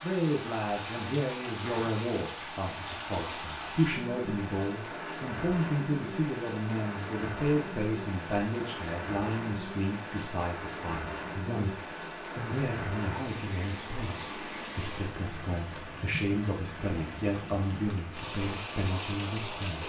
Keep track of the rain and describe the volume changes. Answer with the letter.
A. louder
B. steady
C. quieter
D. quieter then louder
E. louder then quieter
B.